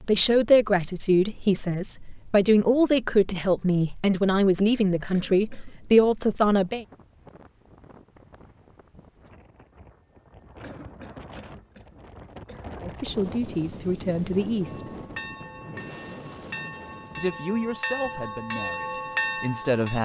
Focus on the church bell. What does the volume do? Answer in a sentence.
The volume of the church bell goes up.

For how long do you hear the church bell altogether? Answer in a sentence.
The church bell can be heard for 5 seconds in total.